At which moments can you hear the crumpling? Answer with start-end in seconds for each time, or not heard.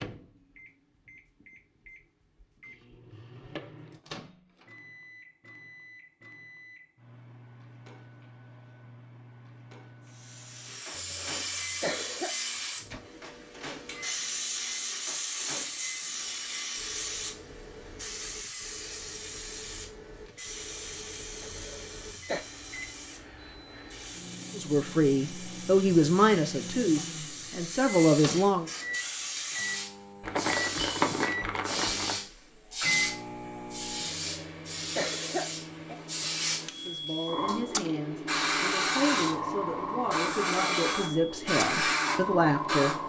30.2-32.1.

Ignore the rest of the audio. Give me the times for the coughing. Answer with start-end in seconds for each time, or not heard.
10.9-12.3, 21.4-22.4, 34.0-36.0.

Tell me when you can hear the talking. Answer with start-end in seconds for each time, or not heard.
24.6-28.6, 36.7-43.0.